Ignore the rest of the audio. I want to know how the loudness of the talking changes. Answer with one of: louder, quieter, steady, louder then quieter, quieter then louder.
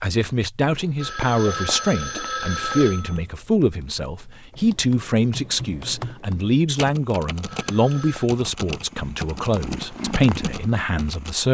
steady.